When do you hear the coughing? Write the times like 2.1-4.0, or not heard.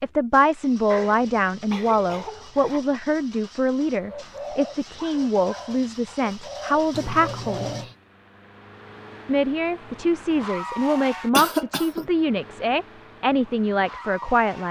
0.8-2.9, 6.9-8.0, 11.3-12.1.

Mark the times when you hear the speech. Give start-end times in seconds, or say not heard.
0.0-7.8, 9.2-14.6.